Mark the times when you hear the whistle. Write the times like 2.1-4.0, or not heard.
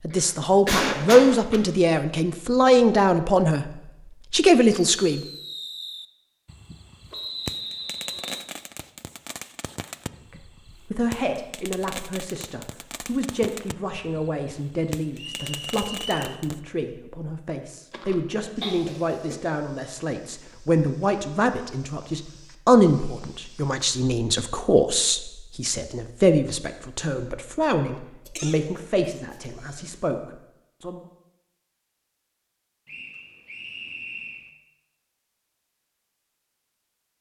7.1-8.4, 15.2-16.4, 32.9-34.5.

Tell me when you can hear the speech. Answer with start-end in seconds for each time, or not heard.
0.0-5.2, 10.3-31.1.